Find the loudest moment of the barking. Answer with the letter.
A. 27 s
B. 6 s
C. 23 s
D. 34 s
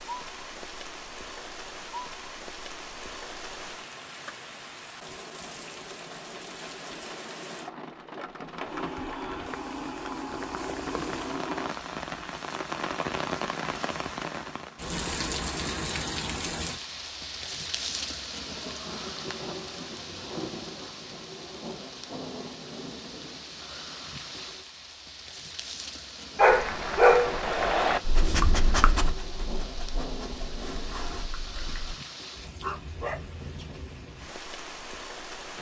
A.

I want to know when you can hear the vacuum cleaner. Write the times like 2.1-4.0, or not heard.
8.7-11.8.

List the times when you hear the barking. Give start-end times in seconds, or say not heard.
26.4-31.9, 32.6-33.8.